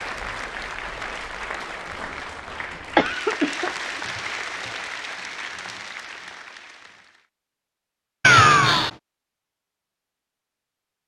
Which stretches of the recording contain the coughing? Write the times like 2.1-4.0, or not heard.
3.0-3.8, 8.2-8.9.